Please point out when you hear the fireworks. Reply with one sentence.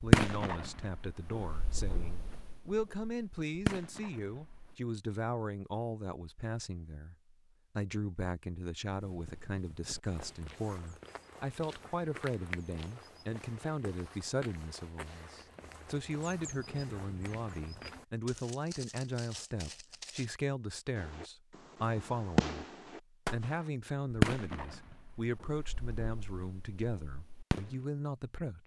The fireworks can be heard from 0.0 to 4.8 s and from 20.9 to 27.8 s.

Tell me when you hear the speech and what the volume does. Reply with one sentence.
You can hear the speech from 0.0 to 28.6 s, at a steady volume.